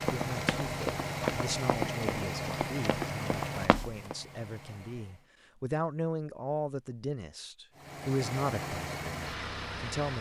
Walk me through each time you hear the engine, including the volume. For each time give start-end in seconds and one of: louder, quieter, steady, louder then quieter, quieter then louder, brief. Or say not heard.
0.0-5.3 quieter
7.8-10.1 brief.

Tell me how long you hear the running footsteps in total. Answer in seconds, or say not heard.
4 s.